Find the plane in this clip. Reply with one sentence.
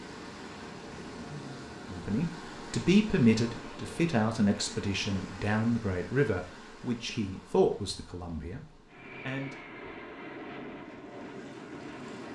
The plane can be heard from 8.8 to 12.3 s.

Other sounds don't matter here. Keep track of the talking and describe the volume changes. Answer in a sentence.
The volume of the talking goes down.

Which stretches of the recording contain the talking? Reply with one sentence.
The talking can be heard from 1.9 to 9.6 s.